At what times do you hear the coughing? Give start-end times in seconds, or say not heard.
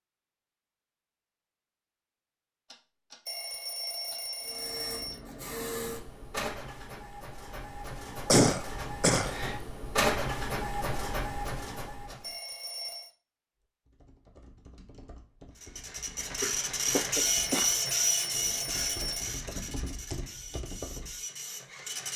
8.2-9.3, 16.4-17.8.